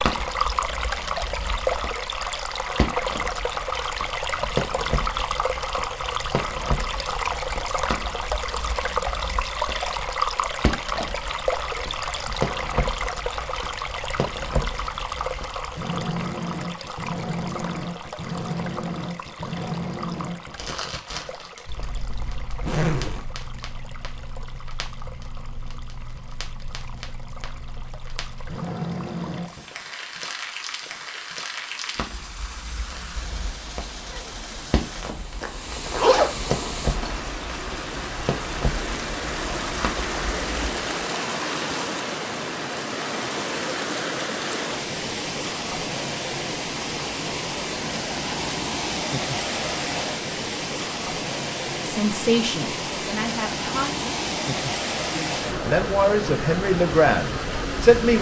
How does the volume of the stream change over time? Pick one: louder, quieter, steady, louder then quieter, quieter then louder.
quieter then louder.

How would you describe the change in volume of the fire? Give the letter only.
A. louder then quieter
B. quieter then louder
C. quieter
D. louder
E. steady
E.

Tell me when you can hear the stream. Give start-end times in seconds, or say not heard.
0.0-58.1.